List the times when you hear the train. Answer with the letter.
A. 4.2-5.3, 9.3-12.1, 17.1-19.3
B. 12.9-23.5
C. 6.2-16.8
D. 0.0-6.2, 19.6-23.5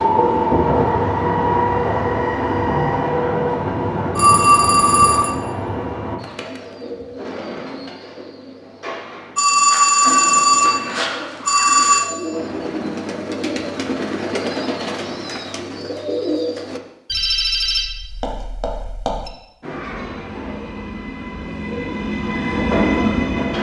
D.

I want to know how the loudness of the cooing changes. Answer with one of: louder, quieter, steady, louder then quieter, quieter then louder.
louder.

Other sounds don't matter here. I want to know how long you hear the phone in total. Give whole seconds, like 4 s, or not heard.
6 s.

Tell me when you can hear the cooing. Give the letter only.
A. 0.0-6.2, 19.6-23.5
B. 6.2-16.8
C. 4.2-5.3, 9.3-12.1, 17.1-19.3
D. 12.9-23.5
B.